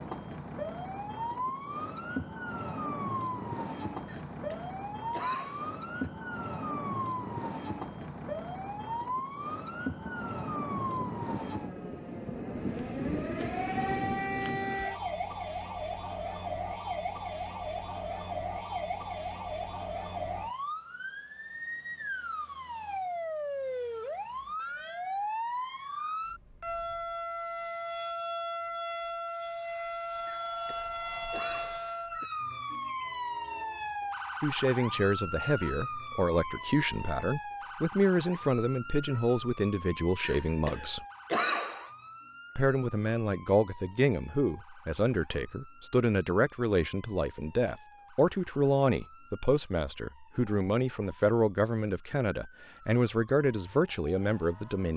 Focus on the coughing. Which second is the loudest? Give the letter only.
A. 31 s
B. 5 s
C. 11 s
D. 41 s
D.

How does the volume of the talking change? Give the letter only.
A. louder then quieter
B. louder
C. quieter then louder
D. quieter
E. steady
E.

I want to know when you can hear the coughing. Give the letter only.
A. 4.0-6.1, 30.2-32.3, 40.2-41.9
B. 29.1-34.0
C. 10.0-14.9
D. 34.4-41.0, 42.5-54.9
A.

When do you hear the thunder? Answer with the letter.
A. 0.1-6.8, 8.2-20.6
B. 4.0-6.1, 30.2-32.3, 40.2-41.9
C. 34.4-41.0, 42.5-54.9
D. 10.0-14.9
D.